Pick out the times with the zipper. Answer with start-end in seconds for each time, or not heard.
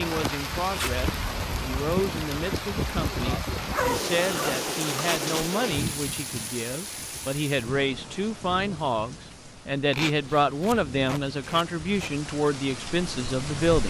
3.6-4.6, 9.9-10.8.